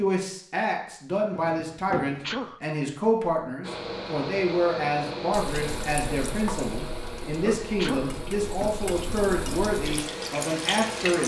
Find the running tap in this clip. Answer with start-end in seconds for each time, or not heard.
5.3-11.2.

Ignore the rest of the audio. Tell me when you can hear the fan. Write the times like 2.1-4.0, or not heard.
3.6-11.2.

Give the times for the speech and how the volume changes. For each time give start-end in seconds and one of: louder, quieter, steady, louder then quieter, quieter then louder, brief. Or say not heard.
0.0-11.2 steady.